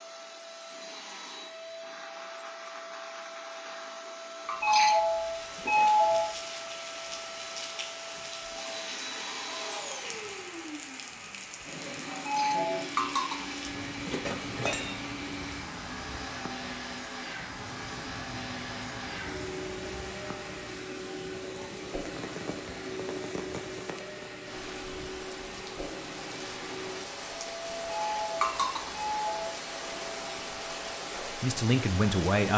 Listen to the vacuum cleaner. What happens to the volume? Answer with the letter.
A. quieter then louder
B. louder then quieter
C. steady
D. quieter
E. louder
C.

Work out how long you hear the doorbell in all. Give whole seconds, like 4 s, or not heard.
4 s.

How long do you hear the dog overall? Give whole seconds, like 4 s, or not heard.
not heard.